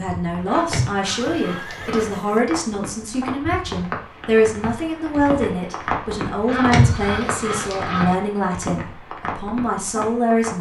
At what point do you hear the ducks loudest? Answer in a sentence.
The loudest moment of the ducks is at 7 seconds.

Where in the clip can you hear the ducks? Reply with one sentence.
You can hear the ducks from 0.5 to 2.1 s and from 6.5 to 8.2 s.